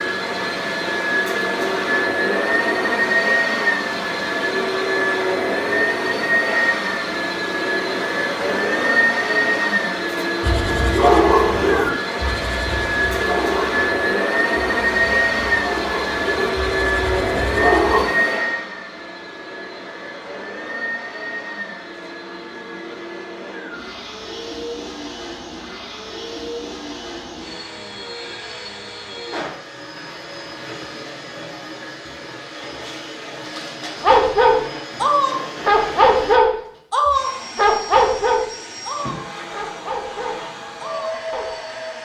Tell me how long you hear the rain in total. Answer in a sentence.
The rain can't be heard in this clip.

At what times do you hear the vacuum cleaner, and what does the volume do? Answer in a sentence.
You can hear the vacuum cleaner from 0.0 to 41.9 s, getting quieter.